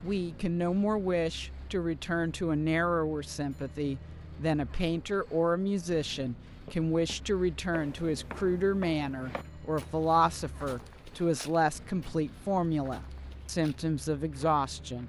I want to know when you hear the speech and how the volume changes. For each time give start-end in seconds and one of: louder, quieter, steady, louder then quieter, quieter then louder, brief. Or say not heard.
0.0-15.0 steady.